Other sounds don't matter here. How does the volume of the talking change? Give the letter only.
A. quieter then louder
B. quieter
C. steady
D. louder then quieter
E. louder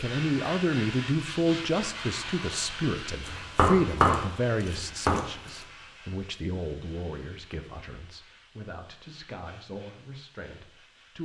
B.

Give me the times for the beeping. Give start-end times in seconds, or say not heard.
not heard.